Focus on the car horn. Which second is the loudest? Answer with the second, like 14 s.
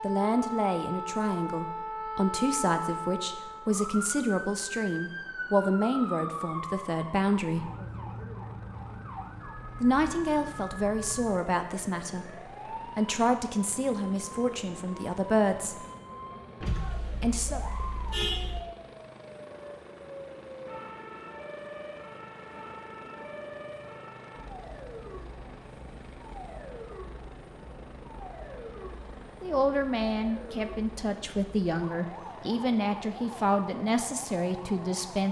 18 s.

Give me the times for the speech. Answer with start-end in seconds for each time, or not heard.
0.0-7.7, 9.8-15.8, 17.2-17.6, 29.4-35.2.